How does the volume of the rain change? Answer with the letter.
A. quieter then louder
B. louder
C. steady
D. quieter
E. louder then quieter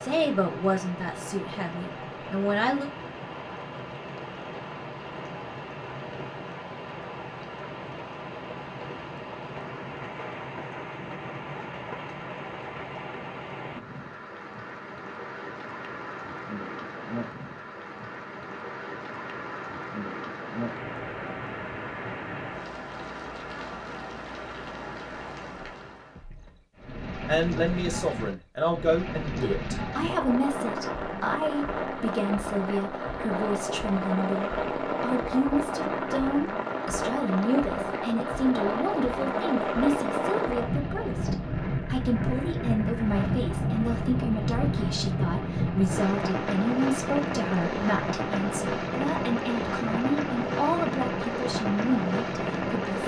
B.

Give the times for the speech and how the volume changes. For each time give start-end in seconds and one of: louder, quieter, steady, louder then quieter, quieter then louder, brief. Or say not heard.
0.0-2.9 brief
27.2-53.0 steady.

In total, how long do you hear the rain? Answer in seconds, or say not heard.
53 s.